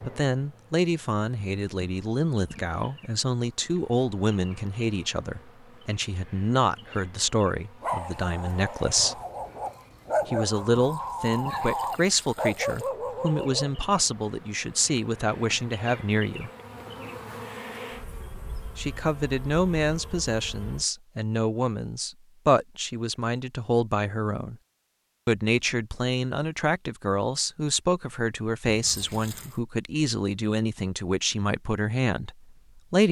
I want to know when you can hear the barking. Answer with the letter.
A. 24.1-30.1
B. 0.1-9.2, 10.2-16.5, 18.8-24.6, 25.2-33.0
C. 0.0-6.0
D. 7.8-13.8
D.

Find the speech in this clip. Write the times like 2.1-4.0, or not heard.
0.1-9.2, 10.2-16.5, 18.8-24.6, 25.2-33.0.